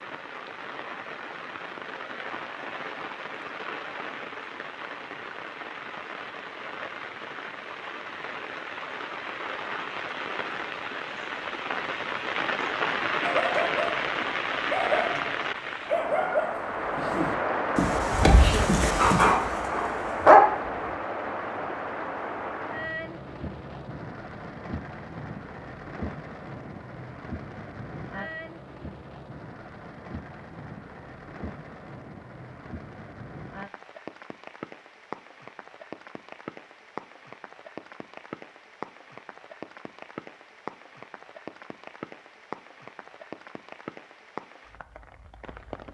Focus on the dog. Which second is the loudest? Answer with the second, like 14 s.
20 s.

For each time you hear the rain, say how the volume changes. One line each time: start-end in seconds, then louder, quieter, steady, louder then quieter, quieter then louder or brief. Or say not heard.
0.0-45.8 louder then quieter.